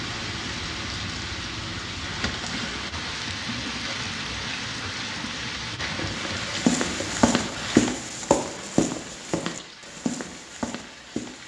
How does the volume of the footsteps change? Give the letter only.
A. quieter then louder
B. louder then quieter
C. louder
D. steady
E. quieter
E.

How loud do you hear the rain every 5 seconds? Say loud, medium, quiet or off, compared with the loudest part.
loud, loud, quiet.